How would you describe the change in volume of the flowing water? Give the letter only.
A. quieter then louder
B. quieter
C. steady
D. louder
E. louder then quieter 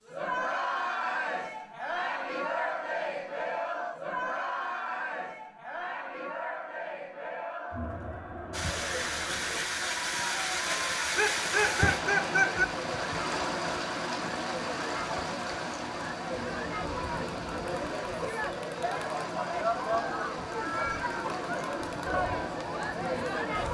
B.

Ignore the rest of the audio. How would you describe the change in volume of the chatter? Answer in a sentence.
The loudness of the chatter goes down, then up.